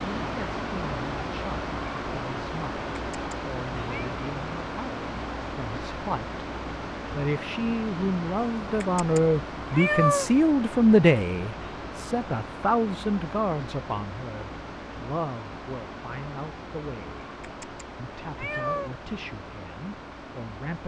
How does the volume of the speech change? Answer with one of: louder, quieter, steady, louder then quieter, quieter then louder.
louder then quieter.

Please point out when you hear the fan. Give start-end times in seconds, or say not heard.
0.0-20.8.